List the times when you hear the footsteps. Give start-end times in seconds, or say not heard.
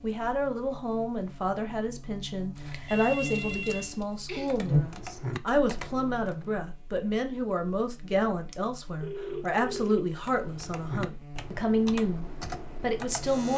not heard.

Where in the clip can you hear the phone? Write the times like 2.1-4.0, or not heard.
2.9-4.6, 9.0-10.2.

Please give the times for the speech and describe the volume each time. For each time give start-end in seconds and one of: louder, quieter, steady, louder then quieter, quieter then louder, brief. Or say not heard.
0.0-13.5 steady.